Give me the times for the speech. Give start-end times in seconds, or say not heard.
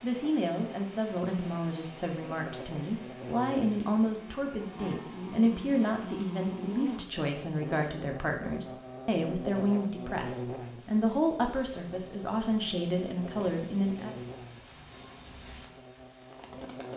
0.0-14.2.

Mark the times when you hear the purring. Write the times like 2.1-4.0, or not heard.
not heard.